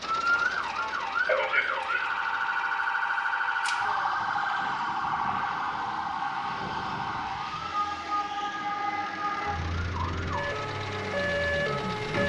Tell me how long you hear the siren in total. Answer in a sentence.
You can hear the siren for 12 seconds altogether.